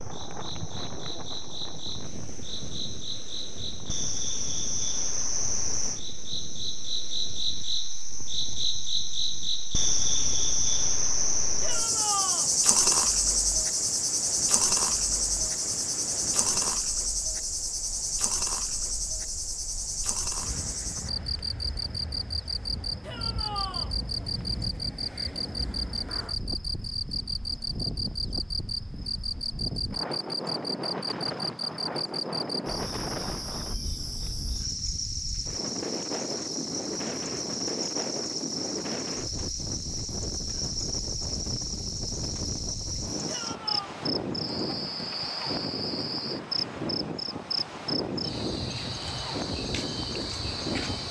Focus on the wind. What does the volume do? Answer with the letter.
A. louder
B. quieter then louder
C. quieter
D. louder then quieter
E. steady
A.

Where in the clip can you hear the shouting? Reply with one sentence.
The shouting can be heard from 11.6 to 12.5 s, from 23.0 to 23.9 s and from 43.2 to 43.9 s.